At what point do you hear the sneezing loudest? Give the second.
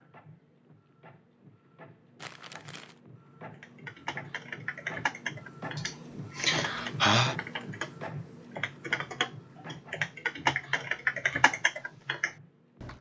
7 s.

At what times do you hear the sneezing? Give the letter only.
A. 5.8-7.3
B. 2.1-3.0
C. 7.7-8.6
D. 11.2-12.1
A.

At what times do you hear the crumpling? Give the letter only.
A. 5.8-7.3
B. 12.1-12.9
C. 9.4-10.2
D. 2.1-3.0
D.